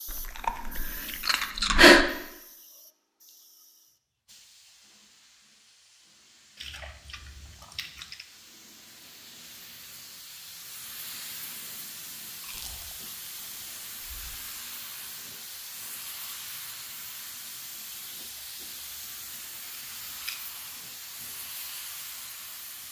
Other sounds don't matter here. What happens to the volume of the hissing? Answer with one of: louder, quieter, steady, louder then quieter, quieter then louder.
louder.